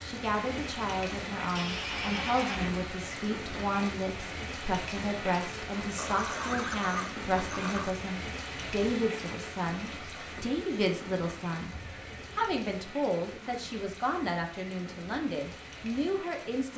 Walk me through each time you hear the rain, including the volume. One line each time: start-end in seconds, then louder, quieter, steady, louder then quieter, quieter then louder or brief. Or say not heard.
0.0-16.7 quieter.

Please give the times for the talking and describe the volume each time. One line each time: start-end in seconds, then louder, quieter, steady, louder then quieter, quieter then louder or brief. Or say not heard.
0.1-11.7 steady
12.3-16.7 steady.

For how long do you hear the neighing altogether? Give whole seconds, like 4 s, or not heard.
4 s.